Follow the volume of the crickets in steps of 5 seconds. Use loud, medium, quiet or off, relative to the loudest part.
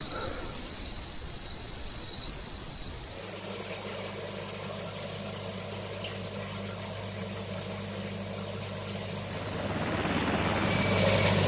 medium, medium, loud.